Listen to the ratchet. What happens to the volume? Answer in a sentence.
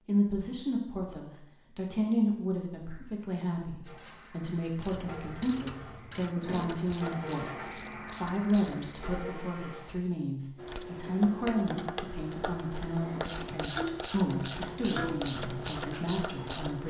The loudness of the ratchet goes up.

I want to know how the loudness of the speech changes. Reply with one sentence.
The volume of the speech stays about the same.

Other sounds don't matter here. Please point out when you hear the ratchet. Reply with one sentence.
You can hear the ratchet from 4.8 to 8.9 s and from 10.6 to 16.8 s.